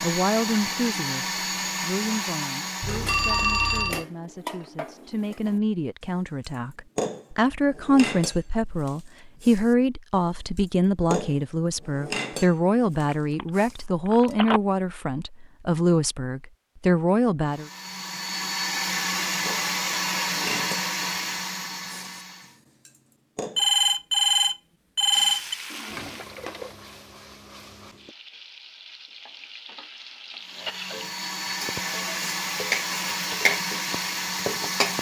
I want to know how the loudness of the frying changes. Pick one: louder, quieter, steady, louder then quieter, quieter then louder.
quieter then louder.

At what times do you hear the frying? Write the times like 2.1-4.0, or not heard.
25.1-34.9.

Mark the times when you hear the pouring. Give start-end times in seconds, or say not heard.
25.4-26.9.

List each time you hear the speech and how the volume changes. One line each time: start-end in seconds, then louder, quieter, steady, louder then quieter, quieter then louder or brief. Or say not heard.
0.0-17.7 louder.